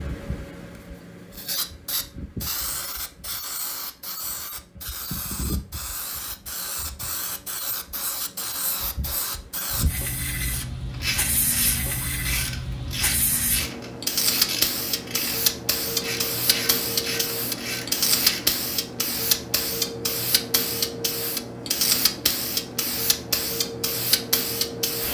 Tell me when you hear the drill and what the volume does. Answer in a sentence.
You can't hear the drill here.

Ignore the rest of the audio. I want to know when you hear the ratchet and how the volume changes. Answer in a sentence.
The ratchet can be heard from 10.9 to 18.6 s, at a steady volume.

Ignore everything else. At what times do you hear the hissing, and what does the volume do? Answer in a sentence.
The hissing can be heard from 0.0 to 25.0 s, getting louder.